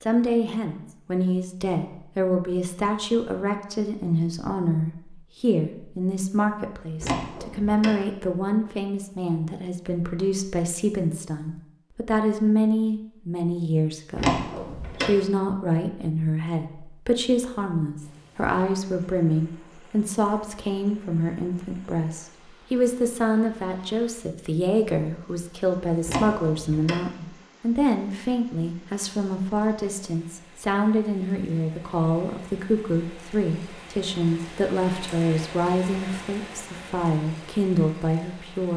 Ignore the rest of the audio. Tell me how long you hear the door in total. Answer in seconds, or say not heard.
3 s.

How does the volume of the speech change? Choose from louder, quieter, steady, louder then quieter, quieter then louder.
steady.